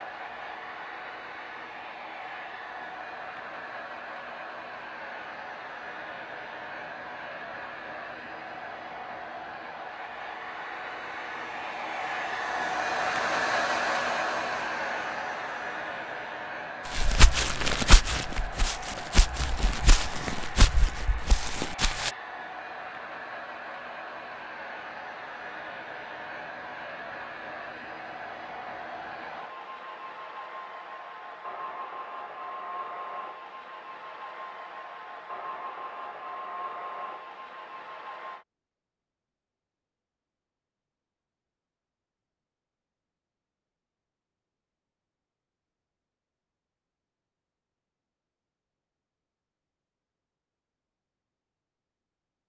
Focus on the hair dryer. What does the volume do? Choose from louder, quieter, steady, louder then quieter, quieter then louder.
louder then quieter.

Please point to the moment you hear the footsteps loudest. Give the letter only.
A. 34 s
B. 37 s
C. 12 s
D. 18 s
D.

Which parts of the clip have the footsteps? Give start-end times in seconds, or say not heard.
16.9-22.1.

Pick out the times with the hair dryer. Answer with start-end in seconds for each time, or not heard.
0.0-38.5.